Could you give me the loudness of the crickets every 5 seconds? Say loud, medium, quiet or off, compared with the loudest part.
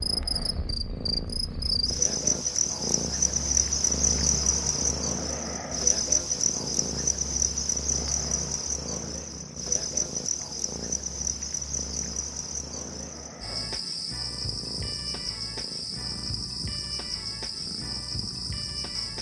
loud, loud, medium, medium.